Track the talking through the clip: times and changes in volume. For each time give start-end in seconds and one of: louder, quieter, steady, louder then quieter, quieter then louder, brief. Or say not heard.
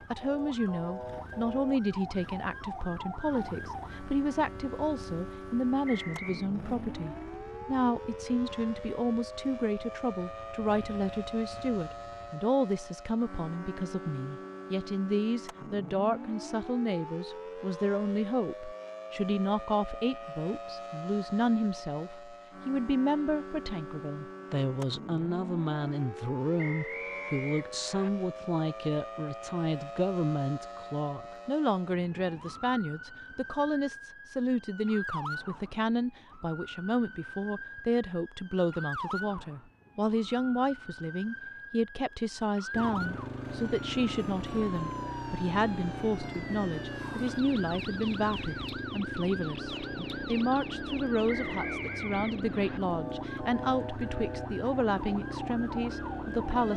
0.1-56.7 steady.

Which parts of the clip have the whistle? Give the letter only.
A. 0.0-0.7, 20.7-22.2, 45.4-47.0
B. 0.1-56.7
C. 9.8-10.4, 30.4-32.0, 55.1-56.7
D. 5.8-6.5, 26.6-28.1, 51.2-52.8
D.